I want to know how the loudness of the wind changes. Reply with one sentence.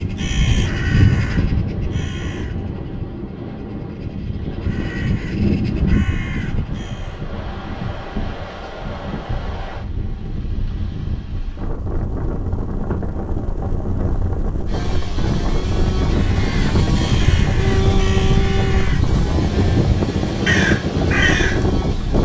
The loudness of the wind goes up.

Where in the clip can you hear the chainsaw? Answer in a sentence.
You can hear the chainsaw from 14.7 to 22.1 s.